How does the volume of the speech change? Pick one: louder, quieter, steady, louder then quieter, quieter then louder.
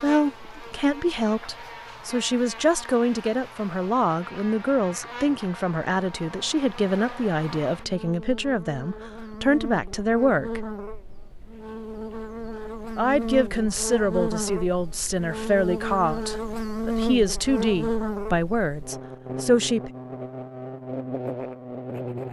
steady.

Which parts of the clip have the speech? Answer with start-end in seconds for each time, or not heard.
0.0-10.7, 12.9-19.9.